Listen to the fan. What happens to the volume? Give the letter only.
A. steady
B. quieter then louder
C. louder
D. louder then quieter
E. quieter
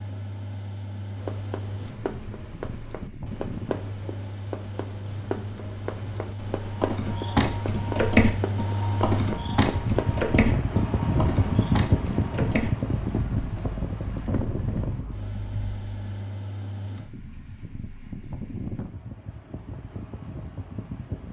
D.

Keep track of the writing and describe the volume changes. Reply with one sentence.
The volume of the writing stays about the same.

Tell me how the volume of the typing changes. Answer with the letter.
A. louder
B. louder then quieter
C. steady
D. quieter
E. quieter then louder
D.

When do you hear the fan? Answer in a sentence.
The fan can be heard from 0.0 to 21.2 s.